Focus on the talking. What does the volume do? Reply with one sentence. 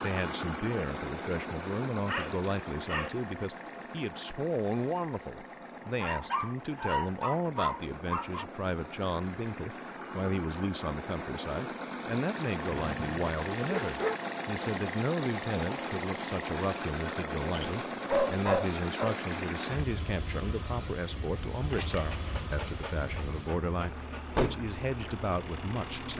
The volume of the talking stays about the same.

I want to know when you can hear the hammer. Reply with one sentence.
You can't hear the hammer here.